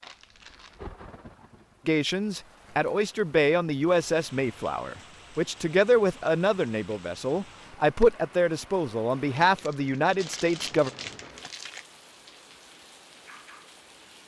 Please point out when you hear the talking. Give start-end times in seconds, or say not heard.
1.9-10.9.